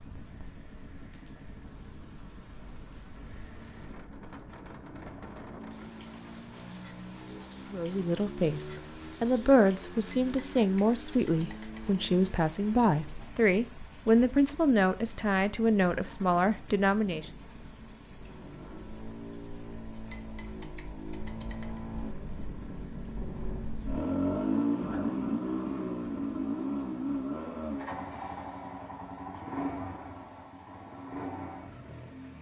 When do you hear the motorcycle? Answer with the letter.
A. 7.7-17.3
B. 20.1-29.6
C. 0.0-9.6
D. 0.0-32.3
D.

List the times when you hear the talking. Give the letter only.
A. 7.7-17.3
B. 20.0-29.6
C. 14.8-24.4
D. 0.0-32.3
A.